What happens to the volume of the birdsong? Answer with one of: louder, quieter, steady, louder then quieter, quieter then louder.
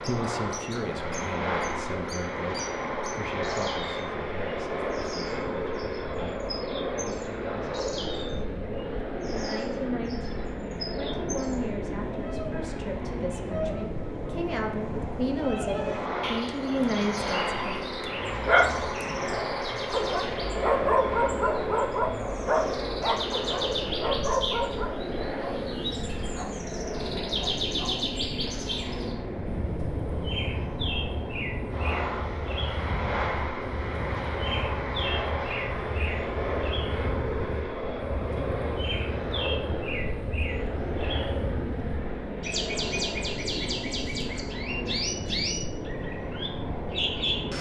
louder.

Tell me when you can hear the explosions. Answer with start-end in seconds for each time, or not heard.
not heard.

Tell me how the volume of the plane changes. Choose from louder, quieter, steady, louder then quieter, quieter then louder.
steady.